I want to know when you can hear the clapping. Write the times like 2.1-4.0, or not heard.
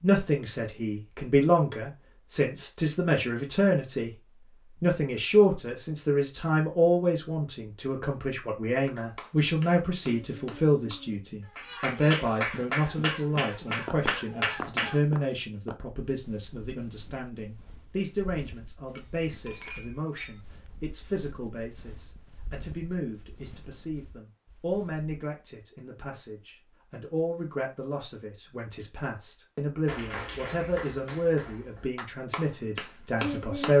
8.8-15.0, 29.9-33.7.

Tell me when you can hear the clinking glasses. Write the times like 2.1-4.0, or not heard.
18.9-20.4.